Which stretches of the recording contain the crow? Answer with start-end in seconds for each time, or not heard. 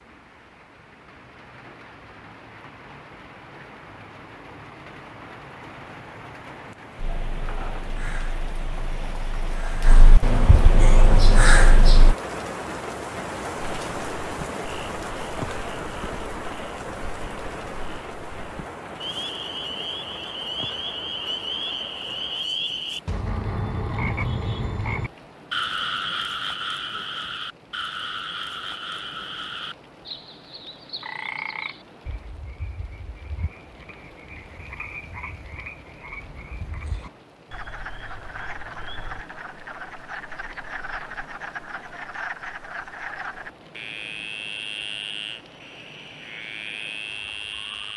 7.0-12.2.